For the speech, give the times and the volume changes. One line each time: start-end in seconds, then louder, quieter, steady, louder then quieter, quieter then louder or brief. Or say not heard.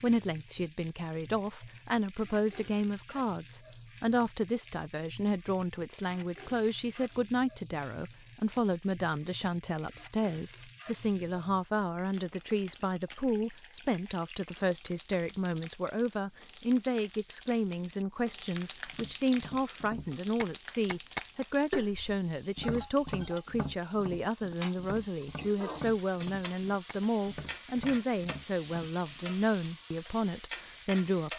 0.0-31.3 steady.